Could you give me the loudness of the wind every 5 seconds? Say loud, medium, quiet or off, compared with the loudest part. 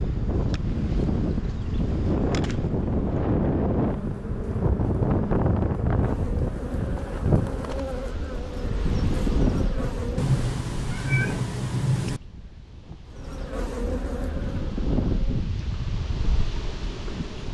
loud, loud, medium, medium.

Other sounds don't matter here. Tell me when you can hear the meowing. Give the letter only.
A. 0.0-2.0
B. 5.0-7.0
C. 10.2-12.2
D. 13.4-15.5
C.